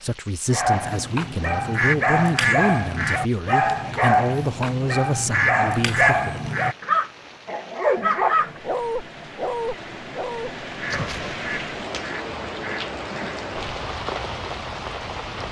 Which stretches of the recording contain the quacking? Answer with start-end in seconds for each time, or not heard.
1.7-3.2, 5.3-6.8, 10.8-13.4.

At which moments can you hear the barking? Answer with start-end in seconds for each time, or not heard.
0.5-11.4.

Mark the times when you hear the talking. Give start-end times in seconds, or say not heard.
0.0-6.5.